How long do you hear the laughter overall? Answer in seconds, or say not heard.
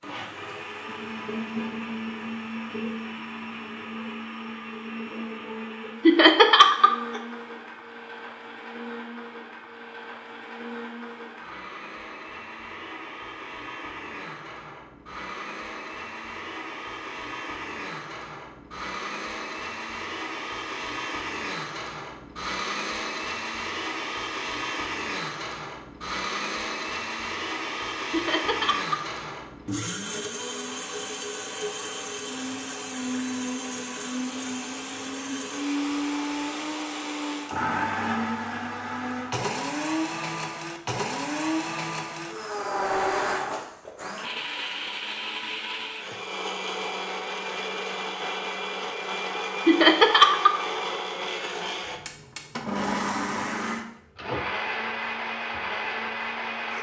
3 s.